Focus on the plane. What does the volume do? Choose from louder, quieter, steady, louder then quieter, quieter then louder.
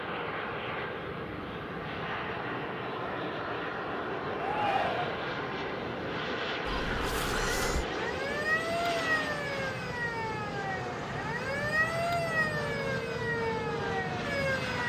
steady.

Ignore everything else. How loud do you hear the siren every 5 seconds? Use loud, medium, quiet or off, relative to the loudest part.
off, loud, loud.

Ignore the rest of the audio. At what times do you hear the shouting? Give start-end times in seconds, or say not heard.
4.4-5.2.